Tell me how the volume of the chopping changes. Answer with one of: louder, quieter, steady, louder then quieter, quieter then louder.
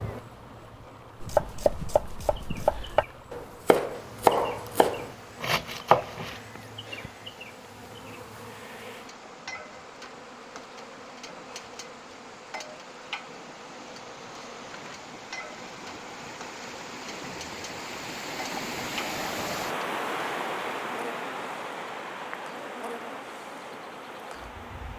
louder.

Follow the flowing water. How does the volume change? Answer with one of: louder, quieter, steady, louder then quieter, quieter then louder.
louder.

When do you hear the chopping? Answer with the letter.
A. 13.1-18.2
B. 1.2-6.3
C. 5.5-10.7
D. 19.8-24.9
B.